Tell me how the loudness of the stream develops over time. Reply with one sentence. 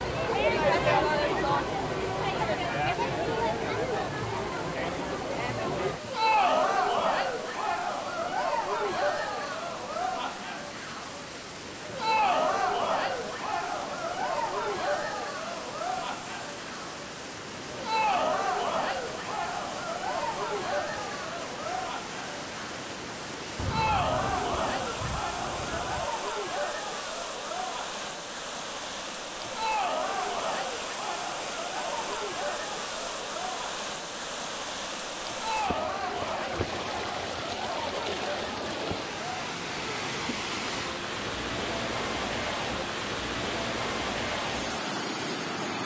The loudness of the stream goes up.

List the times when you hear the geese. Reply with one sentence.
The geese can be heard from 23.6 to 26.1 s.